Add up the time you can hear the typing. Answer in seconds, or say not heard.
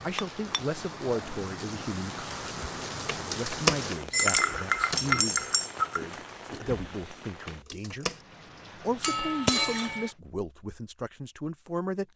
6 s.